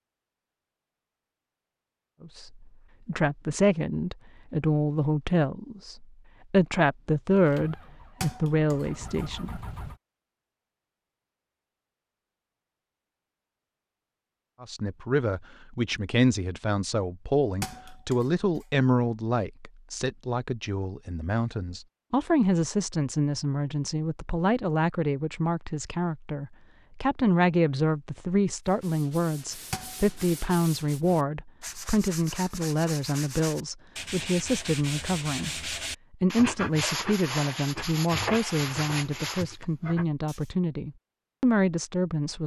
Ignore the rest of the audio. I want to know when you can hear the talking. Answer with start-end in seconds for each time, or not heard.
2.2-9.6, 14.6-42.4.